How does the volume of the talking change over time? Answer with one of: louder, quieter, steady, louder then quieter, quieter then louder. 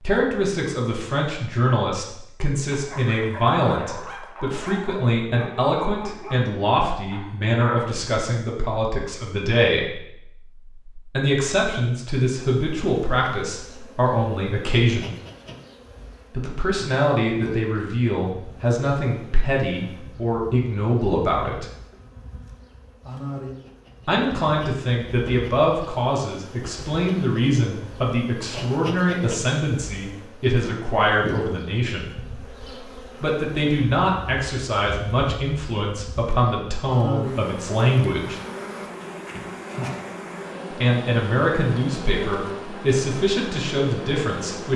steady.